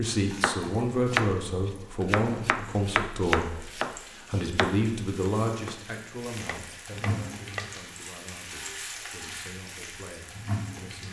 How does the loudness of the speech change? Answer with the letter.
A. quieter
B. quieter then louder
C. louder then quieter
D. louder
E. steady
A.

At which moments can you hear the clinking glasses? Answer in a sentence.
The clinking glasses can't be heard in this clip.